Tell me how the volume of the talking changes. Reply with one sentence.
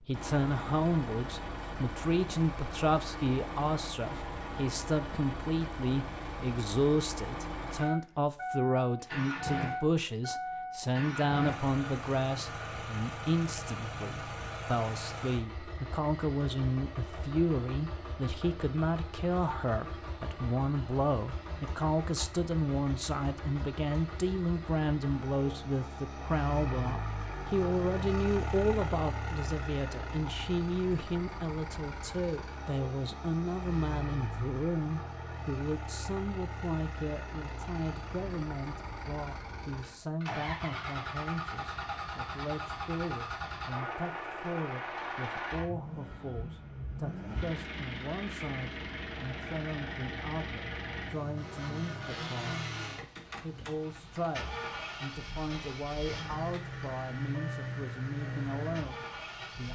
The volume of the talking goes down.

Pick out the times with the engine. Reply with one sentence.
The engine can be heard from 0.0 to 59.7 s.